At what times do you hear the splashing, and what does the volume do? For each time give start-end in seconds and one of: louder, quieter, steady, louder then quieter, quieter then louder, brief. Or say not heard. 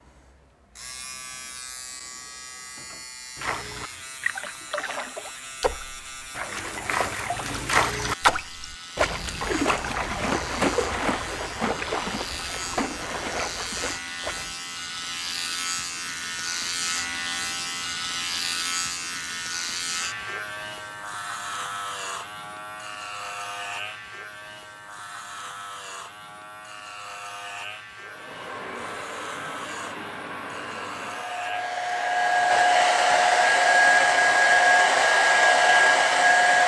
3.4-14.6 louder then quieter.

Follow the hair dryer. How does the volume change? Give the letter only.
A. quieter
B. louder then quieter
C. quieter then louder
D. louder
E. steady
D.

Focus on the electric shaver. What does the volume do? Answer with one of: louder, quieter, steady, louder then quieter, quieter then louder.
louder then quieter.